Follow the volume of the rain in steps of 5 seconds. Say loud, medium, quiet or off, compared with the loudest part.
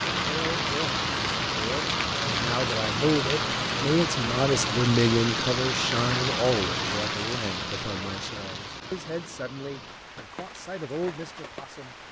loud, loud, quiet.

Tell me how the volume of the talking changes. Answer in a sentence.
The volume of the talking goes up, then down.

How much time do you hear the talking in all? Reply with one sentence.
You can hear the talking for 12 seconds altogether.